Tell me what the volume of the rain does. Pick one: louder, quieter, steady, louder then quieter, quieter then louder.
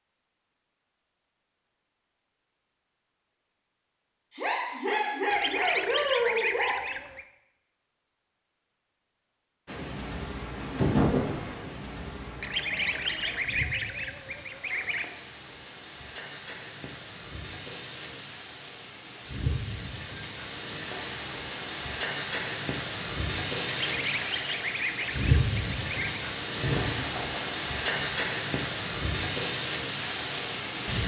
louder.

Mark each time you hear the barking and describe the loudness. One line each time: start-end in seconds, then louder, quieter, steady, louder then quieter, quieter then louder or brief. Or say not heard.
not heard.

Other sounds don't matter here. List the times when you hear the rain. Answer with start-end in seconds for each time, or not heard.
9.7-31.0.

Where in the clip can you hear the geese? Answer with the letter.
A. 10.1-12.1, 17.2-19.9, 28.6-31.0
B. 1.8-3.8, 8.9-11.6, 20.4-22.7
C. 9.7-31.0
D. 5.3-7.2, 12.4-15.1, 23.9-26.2
D.